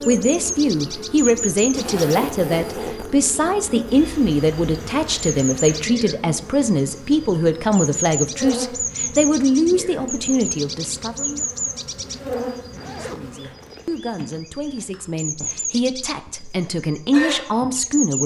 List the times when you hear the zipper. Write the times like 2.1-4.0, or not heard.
1.8-3.1, 12.0-14.4.